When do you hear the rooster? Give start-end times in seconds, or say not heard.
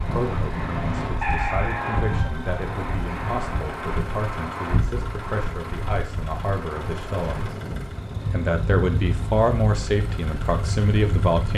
1.2-3.2.